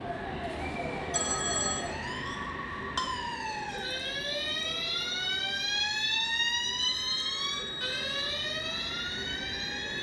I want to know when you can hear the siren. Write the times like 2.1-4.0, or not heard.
0.0-9.9.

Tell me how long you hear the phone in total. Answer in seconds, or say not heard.
2 s.